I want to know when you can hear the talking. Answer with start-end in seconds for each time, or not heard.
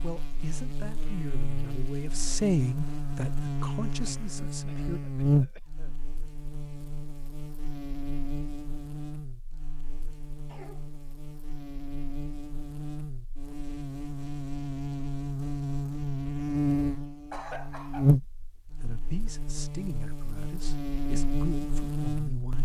0.0-5.0, 18.8-22.6.